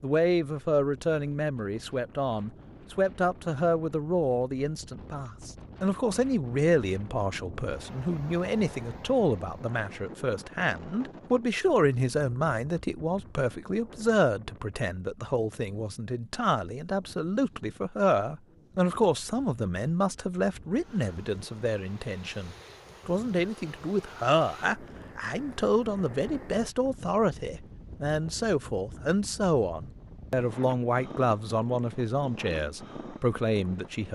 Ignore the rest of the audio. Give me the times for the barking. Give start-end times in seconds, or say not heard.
not heard.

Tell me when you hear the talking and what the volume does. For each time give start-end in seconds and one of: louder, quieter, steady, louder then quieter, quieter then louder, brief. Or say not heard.
0.0-34.1 steady.